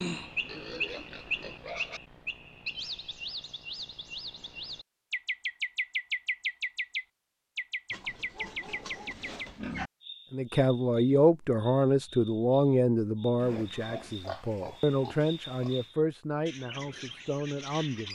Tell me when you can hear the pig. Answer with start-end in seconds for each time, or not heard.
0.5-2.0, 7.9-9.9, 13.4-15.9.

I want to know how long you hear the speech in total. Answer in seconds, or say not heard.
8 s.